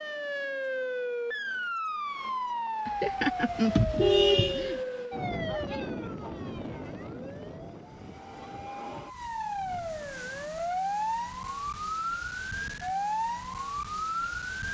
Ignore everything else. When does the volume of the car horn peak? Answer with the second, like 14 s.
4 s.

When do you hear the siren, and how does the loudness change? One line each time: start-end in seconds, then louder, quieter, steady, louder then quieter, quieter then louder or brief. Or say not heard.
0.0-14.6 quieter then louder.